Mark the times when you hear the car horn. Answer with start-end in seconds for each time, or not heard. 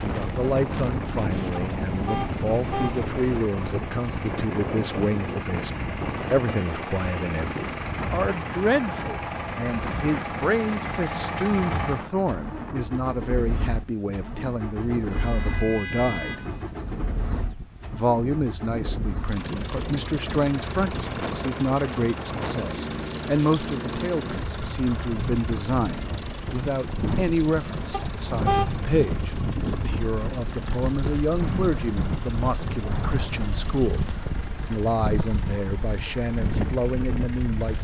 1.6-3.0, 15.1-16.7, 27.9-28.7.